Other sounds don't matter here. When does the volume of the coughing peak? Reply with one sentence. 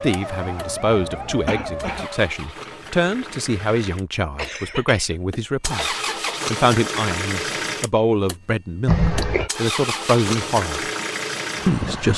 The loudest moment of the coughing is at 9 seconds.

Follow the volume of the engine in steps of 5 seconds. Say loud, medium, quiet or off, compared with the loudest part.
medium, loud, loud.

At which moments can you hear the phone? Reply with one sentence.
The phone can't be heard in this clip.